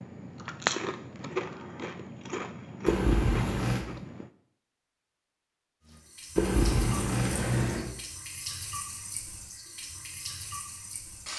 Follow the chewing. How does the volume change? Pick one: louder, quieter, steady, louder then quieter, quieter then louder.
quieter.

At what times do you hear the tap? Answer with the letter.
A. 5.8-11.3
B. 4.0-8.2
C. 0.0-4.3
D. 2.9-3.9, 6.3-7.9
A.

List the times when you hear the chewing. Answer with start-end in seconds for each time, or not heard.
0.0-4.3.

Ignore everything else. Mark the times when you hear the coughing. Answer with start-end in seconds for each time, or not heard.
2.9-3.9, 6.3-7.9.